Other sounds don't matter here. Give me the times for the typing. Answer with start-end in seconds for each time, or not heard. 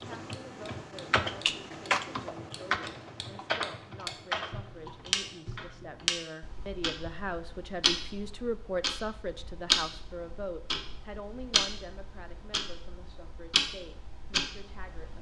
0.0-5.8.